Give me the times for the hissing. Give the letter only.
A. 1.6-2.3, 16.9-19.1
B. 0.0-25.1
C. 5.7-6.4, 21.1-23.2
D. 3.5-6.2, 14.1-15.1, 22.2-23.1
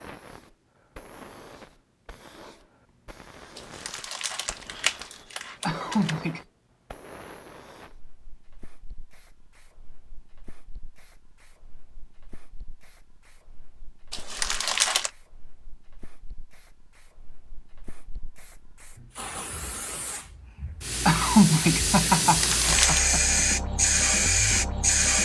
B.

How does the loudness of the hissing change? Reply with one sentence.
The loudness of the hissing goes down, then up.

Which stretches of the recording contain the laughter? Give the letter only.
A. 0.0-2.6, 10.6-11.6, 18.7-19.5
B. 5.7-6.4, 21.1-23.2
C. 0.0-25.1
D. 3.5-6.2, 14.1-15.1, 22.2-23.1
B.